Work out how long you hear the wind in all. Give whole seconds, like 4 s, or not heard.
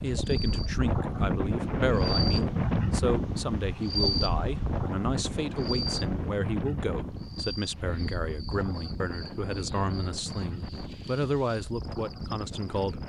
13 s.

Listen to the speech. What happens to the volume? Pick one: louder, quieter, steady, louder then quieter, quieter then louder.
steady.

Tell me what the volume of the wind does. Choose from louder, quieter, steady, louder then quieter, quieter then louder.
quieter.